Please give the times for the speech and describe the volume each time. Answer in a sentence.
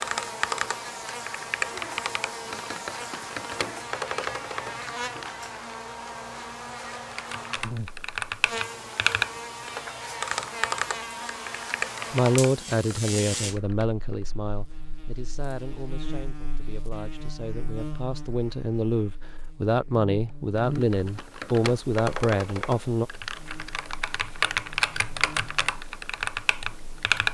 You can hear the speech from 12.1 to 23.1 s, getting quieter then louder.